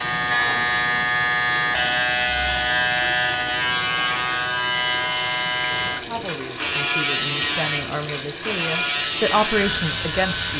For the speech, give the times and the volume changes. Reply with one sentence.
The speech can be heard from 5.9 to 10.5 s, getting louder.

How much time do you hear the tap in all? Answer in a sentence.
The tap can be heard for 10 seconds in total.